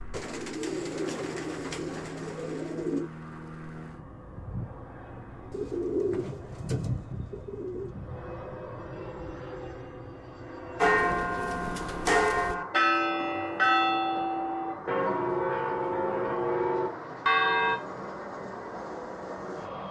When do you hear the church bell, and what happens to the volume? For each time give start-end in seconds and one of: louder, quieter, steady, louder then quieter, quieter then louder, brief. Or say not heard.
10.8-17.8 steady.